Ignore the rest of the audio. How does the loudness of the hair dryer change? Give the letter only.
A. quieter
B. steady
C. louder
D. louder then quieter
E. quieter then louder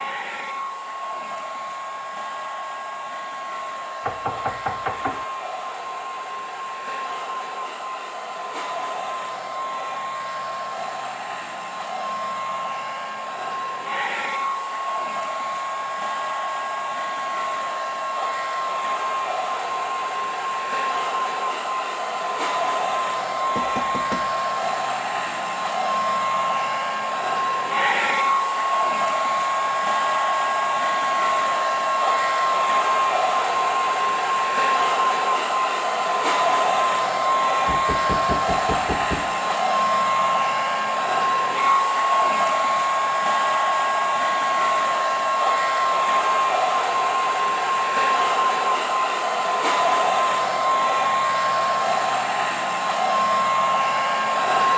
C.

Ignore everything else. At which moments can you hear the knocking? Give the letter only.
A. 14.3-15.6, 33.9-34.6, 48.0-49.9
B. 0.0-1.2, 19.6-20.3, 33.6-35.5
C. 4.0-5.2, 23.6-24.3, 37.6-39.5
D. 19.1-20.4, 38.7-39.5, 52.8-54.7
C.